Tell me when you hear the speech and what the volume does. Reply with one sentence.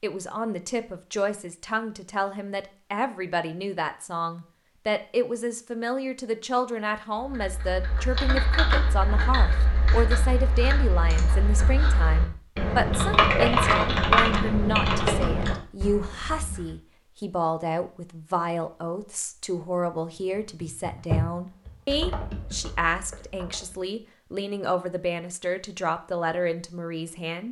The speech can be heard from 0.0 to 27.4 s, at a steady volume.